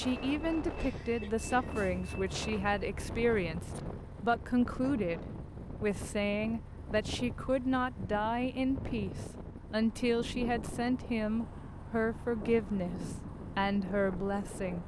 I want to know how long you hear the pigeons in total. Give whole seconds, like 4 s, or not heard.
not heard.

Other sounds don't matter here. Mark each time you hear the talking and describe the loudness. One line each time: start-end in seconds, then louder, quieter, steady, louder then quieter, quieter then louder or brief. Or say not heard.
0.0-14.8 steady.